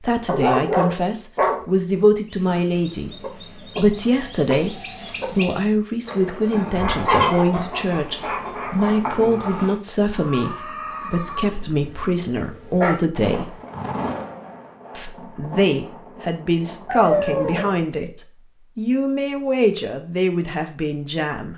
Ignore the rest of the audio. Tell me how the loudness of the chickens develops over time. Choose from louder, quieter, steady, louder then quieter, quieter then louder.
louder then quieter.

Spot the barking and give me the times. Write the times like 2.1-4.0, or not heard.
0.2-1.6, 6.8-9.1, 11.3-12.9, 16.9-17.8.